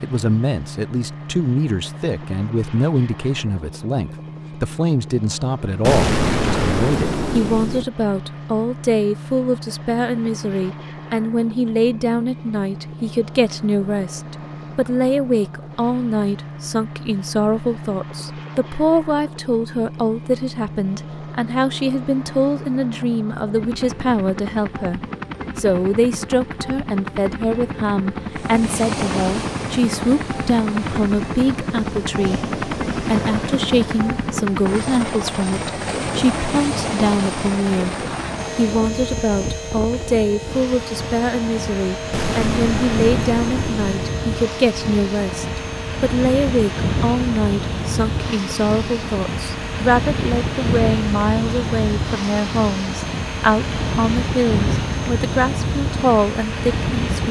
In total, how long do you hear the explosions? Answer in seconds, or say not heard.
4 s.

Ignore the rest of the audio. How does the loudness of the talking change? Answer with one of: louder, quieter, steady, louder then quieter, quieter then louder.
steady.